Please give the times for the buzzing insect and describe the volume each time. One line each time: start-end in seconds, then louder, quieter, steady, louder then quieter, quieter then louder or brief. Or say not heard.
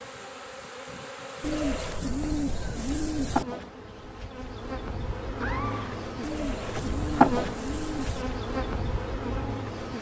0.0-9.9 louder then quieter.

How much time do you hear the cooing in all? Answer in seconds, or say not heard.
4 s.